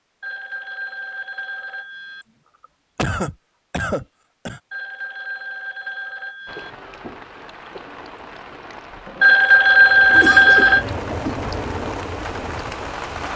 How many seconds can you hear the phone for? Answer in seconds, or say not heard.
6 s.